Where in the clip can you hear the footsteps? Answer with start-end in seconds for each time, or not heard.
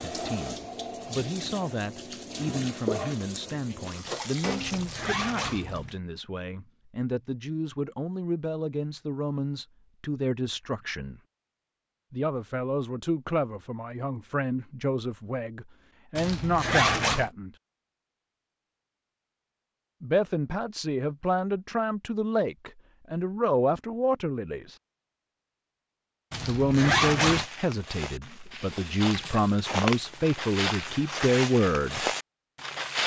27.1-33.0.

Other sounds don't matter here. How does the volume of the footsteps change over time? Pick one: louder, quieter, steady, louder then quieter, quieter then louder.
louder.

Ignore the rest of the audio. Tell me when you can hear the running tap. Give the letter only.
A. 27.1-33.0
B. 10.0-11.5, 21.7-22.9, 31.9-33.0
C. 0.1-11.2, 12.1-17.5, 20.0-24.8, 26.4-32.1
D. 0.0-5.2
D.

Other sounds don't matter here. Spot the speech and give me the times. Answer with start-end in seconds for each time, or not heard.
0.1-11.2, 12.1-17.5, 20.0-24.8, 26.4-32.1.